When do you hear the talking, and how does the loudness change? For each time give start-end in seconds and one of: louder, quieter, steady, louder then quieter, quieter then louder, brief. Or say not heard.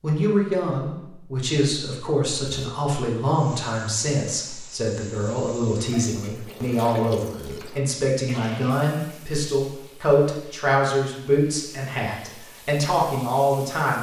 0.0-13.9 steady.